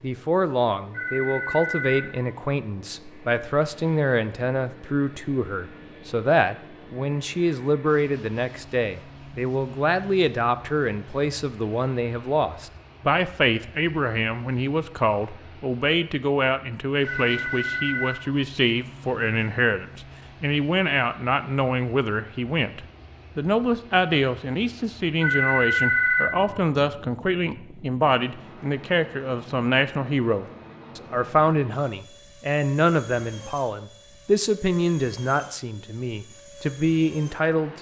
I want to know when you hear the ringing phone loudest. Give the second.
26 s.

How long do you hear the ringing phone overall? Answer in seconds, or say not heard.
4 s.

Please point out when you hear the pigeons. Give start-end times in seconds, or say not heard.
not heard.